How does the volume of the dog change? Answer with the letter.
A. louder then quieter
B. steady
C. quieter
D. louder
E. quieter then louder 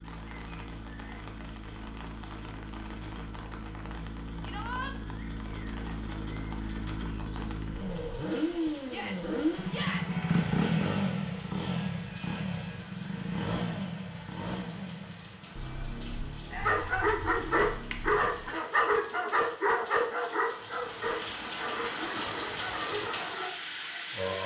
C.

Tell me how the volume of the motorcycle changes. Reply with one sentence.
The loudness of the motorcycle goes up, then down.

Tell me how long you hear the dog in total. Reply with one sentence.
You can hear the dog for 7 seconds altogether.